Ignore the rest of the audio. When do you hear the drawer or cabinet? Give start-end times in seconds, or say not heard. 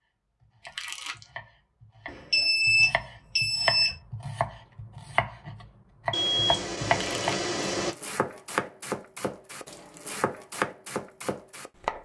not heard.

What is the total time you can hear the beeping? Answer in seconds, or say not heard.
4 s.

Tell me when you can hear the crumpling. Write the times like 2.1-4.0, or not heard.
0.7-1.3, 6.9-7.5.